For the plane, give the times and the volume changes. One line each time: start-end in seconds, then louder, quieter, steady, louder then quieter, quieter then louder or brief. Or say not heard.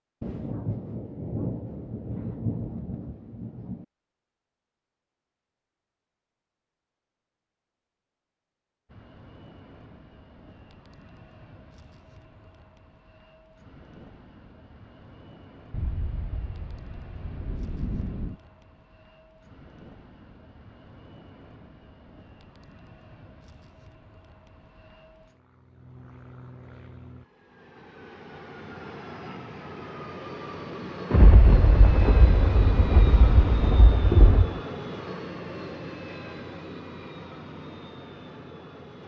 8.8-39.0 louder.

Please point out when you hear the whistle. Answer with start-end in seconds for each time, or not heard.
not heard.